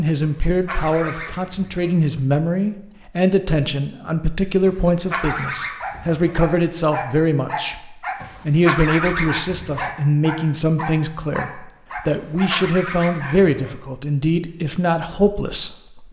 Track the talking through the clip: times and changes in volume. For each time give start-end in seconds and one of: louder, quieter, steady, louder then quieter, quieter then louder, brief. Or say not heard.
0.0-16.0 steady.